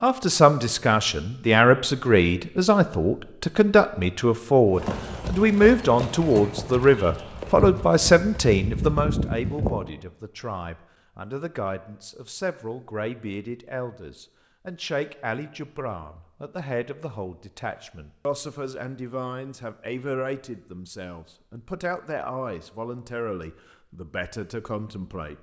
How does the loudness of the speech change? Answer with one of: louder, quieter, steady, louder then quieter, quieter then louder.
quieter.